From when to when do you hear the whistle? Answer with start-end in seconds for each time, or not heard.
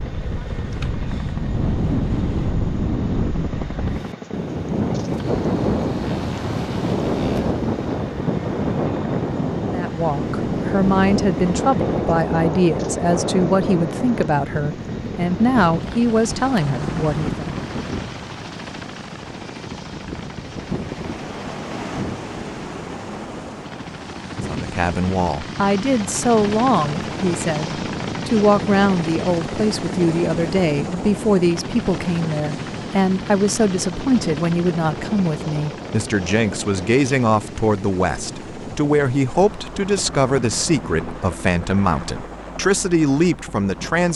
not heard.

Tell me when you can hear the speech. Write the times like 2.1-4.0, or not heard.
9.7-17.4, 24.4-44.1.